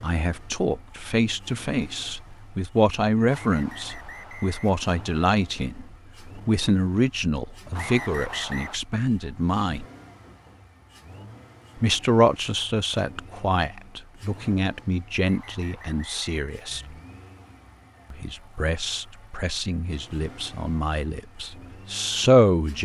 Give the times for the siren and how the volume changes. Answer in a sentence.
The siren can't be heard in this clip.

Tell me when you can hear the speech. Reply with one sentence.
You can hear the speech from 0.0 to 9.8 s, from 11.8 to 16.8 s and from 18.1 to 22.7 s.